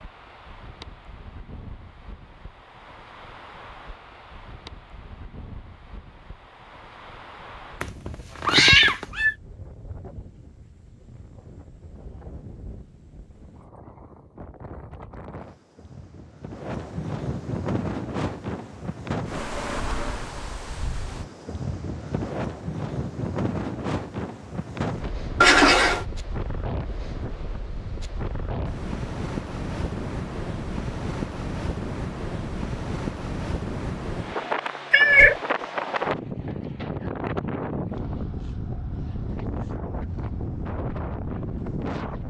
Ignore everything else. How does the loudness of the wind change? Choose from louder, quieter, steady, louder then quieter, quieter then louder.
louder.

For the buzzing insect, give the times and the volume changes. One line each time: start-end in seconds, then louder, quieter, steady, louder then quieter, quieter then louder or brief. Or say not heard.
not heard.